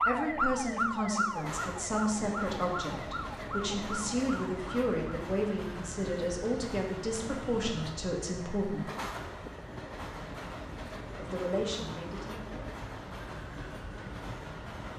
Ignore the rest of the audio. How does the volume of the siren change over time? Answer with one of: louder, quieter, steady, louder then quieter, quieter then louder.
quieter.